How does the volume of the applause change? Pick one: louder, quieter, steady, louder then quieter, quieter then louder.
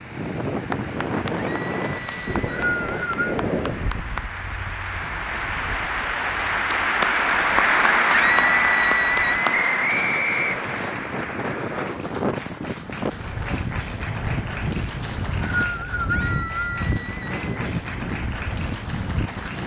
louder then quieter.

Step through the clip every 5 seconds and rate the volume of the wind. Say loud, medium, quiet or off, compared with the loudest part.
loud, quiet, loud, loud.